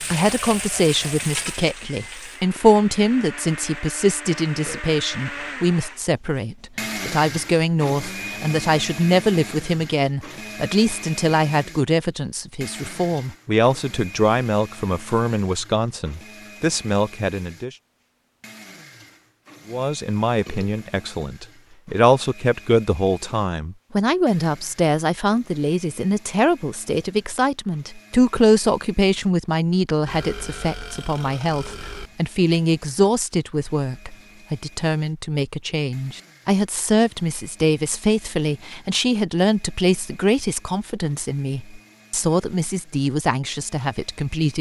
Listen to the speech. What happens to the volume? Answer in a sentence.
The volume of the speech stays about the same.